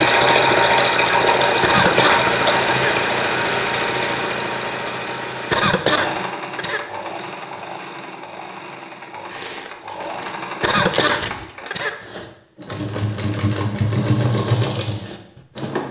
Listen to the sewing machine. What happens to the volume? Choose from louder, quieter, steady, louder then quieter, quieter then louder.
quieter then louder.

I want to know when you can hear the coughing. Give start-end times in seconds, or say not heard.
1.6-3.0, 5.5-6.8, 10.6-11.9.